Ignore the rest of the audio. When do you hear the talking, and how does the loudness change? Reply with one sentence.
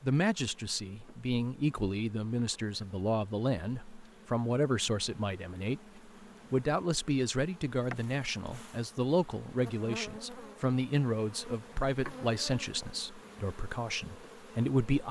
The talking can be heard from 0.0 to 15.0 s, at a steady volume.